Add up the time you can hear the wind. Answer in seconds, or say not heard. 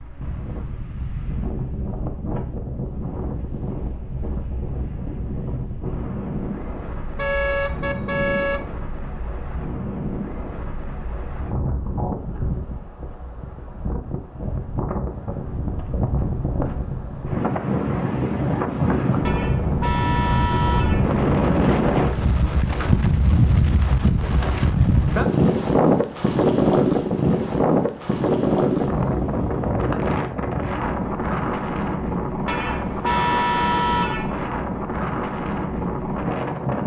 37 s.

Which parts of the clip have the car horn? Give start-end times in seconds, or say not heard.
7.2-8.6, 19.2-21.2, 32.5-34.5.